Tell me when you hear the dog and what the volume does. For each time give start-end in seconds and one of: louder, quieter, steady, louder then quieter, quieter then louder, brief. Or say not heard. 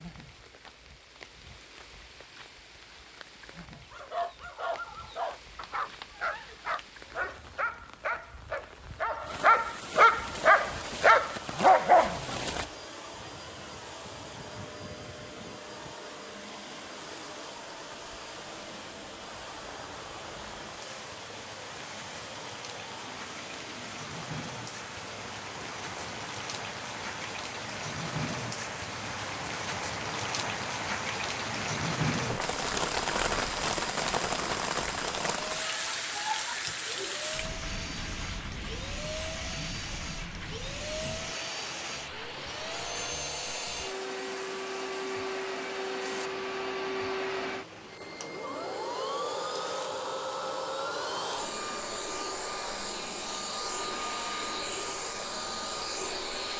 3.8-12.7 louder.